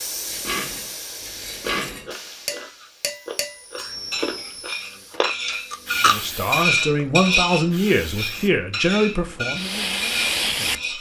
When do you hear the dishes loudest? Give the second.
7 s.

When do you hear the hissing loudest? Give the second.
10 s.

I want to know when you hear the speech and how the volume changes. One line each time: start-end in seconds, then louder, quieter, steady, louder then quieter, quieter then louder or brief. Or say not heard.
6.0-10.9 quieter.